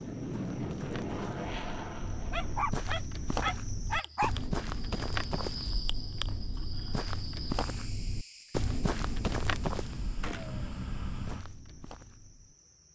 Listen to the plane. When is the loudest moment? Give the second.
1 s.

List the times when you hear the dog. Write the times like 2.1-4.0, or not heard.
2.3-4.5.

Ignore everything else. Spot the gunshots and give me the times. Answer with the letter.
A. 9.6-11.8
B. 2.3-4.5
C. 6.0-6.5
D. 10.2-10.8
D.